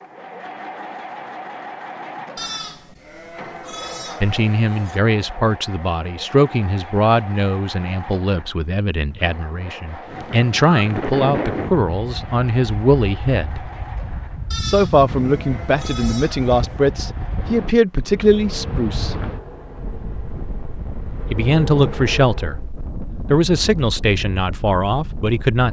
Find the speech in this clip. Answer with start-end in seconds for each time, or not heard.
4.2-13.7, 14.6-19.1, 21.2-25.6.